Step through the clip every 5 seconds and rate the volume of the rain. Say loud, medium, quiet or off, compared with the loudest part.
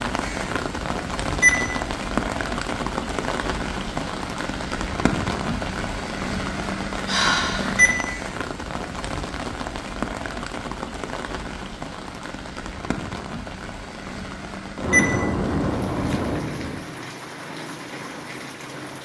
loud, loud, medium, medium.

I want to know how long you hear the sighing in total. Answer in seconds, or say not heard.
3 s.